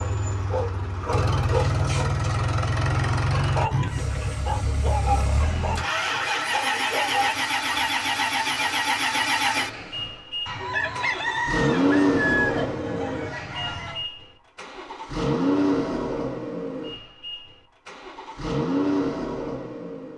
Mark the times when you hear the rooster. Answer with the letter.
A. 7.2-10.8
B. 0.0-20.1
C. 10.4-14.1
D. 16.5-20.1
C.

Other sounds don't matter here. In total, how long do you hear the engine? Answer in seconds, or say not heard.
20 s.